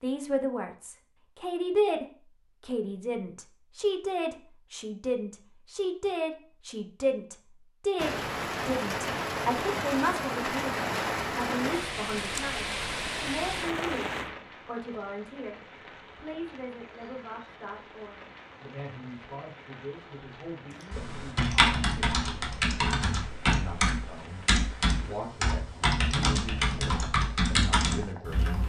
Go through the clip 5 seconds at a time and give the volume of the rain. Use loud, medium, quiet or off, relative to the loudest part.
off, loud, loud, quiet, quiet, quiet.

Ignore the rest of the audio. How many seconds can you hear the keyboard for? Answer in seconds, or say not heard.
8 s.